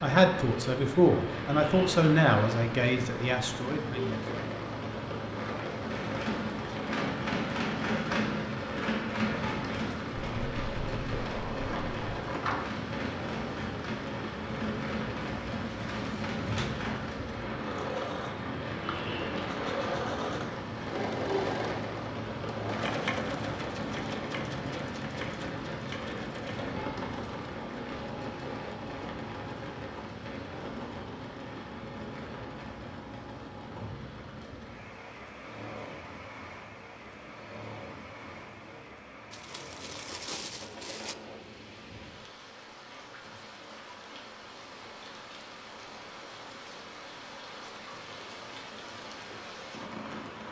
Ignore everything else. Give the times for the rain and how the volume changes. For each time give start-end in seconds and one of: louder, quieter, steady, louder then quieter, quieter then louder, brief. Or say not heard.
0.0-50.4 quieter.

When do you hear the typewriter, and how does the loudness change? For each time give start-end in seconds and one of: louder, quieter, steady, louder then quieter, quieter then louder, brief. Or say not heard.
5.8-17.2 quieter.